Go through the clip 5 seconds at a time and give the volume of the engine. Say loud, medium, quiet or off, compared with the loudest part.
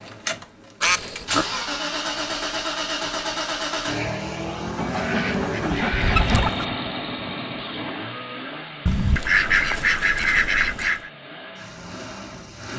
loud, loud, medium.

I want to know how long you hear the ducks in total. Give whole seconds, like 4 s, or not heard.
5 s.